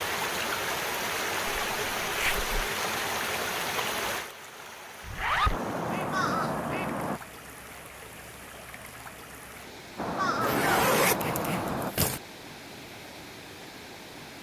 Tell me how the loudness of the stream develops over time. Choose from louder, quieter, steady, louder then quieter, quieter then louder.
quieter.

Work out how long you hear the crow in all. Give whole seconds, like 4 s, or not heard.
4 s.